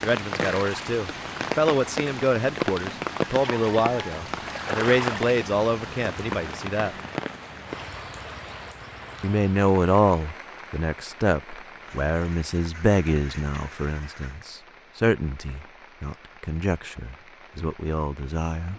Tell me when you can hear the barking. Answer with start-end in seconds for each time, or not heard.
not heard.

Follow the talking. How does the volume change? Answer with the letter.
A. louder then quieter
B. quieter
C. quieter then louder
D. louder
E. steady
B.